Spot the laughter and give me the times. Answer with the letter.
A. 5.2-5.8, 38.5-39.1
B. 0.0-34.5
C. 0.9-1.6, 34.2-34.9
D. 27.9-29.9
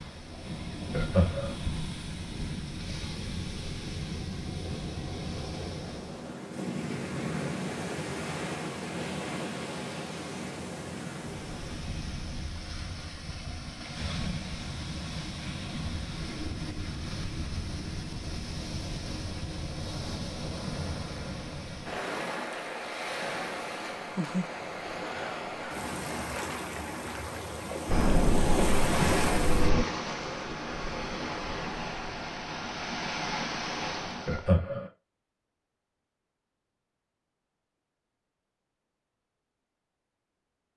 C.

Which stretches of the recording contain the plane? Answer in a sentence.
The plane can be heard from 27.9 to 29.9 s.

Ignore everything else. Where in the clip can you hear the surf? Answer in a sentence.
You can hear the surf from 0.0 to 34.5 s.